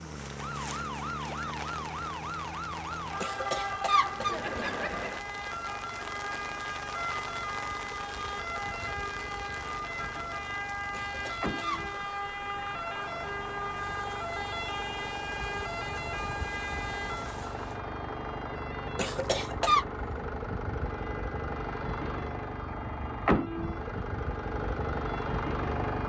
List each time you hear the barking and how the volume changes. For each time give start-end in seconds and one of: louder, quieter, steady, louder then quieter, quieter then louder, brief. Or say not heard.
not heard.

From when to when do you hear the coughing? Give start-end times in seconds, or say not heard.
3.2-5.2, 10.9-11.9, 18.9-19.9.